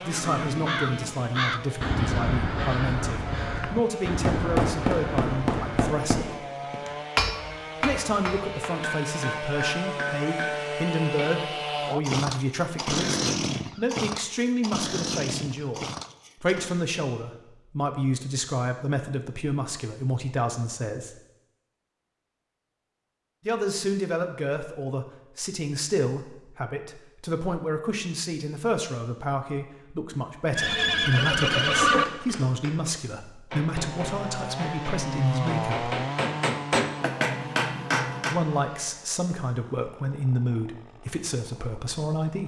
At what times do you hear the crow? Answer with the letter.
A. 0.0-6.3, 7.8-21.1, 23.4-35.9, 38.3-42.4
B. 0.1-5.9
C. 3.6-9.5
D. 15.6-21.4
B.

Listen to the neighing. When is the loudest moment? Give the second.
32 s.